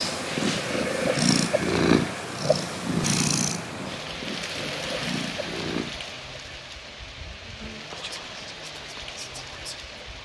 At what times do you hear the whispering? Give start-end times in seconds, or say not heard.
7.8-9.9.